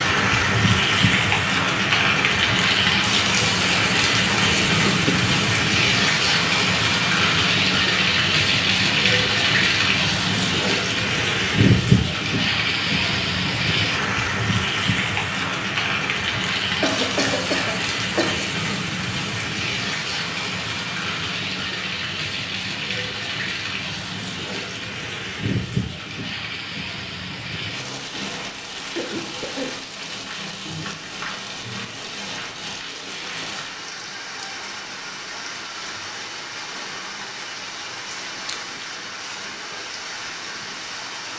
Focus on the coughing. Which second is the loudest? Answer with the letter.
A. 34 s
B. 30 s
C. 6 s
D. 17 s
D.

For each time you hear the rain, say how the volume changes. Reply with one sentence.
You can hear the rain from 0.0 to 41.3 s, getting quieter.